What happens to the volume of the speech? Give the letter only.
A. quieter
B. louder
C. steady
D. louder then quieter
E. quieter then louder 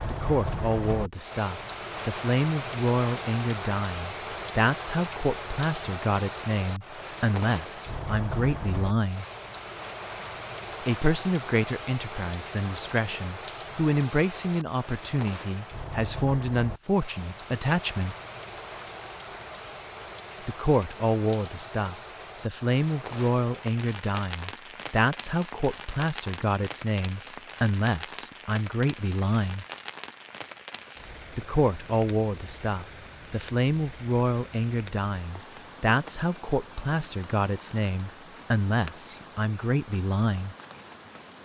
C.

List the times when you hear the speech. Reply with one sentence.
You can hear the speech from 0.1 to 9.2 s, from 10.8 to 18.1 s, from 20.4 to 29.6 s and from 31.4 to 40.5 s.